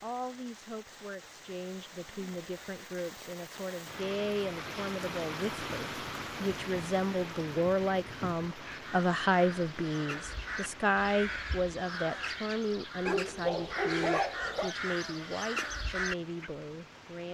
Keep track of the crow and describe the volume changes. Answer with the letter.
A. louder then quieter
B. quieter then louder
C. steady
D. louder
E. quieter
D.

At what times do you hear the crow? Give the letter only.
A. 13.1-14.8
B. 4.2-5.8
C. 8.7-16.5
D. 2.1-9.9
C.